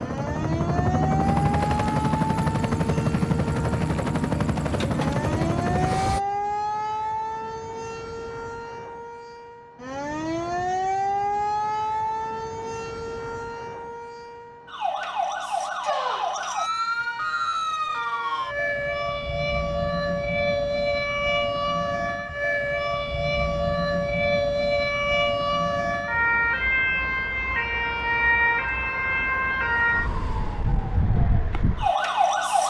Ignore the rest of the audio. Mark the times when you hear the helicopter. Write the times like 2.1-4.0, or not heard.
0.0-6.2.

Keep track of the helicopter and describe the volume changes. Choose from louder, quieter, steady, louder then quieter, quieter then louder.
steady.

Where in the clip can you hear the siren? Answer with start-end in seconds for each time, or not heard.
0.0-32.6.